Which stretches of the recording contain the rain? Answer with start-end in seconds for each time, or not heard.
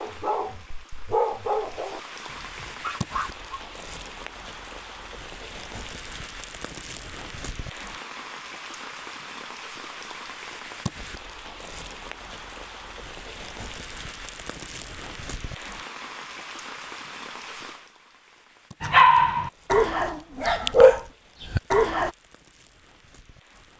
0.0-23.7.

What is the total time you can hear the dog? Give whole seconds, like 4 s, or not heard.
7 s.